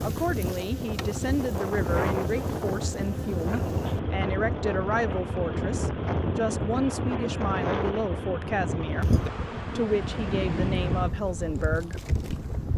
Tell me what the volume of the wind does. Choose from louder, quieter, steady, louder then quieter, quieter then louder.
steady.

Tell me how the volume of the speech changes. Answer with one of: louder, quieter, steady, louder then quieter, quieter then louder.
steady.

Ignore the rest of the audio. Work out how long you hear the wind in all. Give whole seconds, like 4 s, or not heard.
13 s.